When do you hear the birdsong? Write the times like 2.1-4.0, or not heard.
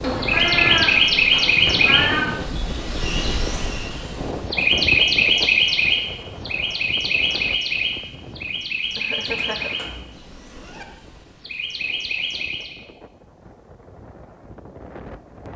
0.0-12.8.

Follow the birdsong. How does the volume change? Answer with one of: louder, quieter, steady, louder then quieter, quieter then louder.
quieter.